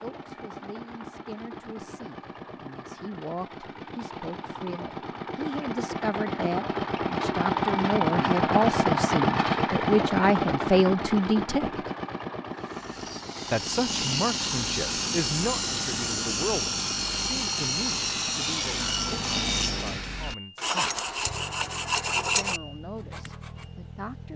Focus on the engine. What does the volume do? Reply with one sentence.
The volume of the engine goes up, then down.